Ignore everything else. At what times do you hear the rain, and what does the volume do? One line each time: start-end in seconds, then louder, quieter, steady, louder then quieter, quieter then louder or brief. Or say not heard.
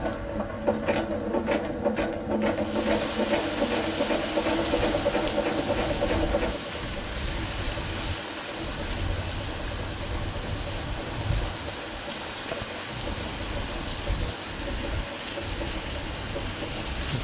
2.5-17.1 steady.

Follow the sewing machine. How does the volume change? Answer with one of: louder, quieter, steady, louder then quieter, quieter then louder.
quieter.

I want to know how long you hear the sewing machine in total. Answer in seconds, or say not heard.
17 s.